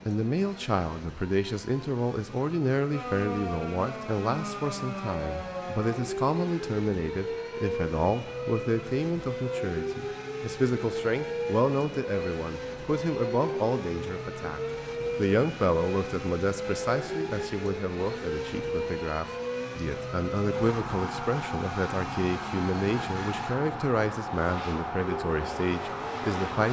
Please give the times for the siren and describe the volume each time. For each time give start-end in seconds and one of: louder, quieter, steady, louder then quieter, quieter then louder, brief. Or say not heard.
2.9-26.6 steady.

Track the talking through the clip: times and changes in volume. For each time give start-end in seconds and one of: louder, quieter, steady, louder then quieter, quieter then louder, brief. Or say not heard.
0.0-26.6 steady.